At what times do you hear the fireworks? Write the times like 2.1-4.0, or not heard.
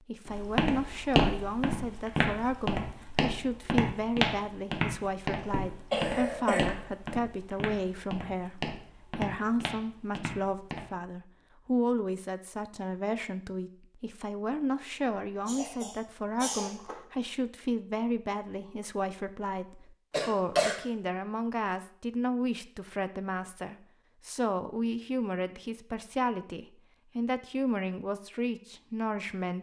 not heard.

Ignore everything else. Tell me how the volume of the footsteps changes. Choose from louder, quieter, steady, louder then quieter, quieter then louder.
quieter.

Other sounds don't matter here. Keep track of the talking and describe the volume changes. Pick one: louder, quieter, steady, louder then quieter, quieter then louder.
steady.